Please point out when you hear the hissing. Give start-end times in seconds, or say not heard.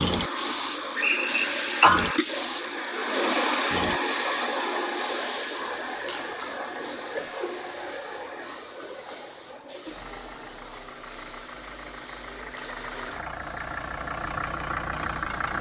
0.0-15.5.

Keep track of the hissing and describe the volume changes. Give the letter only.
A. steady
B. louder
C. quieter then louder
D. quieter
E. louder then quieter
D.